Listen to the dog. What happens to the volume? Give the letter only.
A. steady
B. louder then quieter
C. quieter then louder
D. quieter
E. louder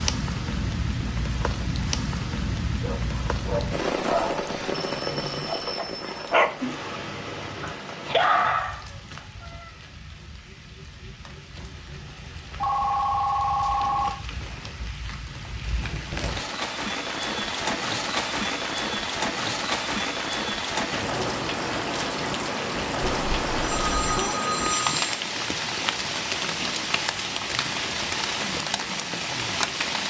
C.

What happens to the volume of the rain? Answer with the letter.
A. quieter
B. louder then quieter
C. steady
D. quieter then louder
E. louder
D.